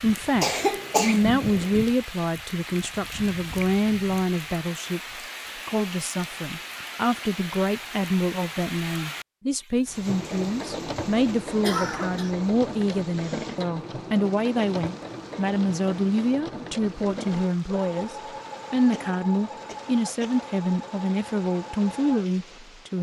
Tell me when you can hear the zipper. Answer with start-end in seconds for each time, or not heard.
not heard.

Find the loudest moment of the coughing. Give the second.
1 s.